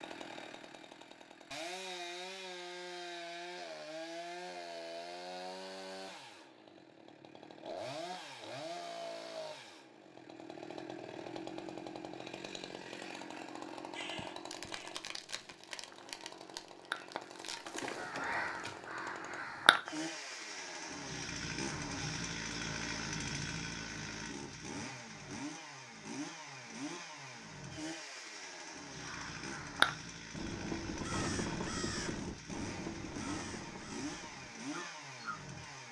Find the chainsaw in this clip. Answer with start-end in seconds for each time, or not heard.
0.0-35.8.